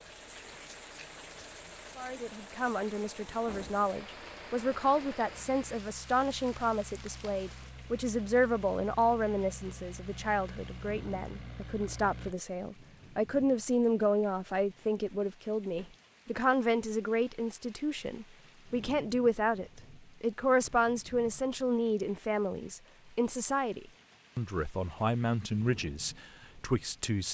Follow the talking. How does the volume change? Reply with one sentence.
The volume of the talking stays about the same.